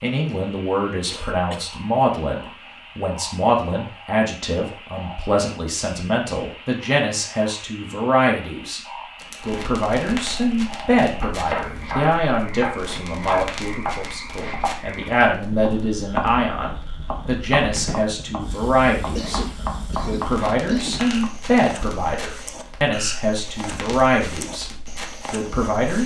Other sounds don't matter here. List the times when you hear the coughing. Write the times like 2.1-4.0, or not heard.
1.1-1.7, 19.1-21.1.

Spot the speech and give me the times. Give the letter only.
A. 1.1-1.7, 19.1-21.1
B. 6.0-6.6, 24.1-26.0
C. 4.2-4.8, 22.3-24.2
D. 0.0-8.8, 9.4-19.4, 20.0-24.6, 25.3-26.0
D.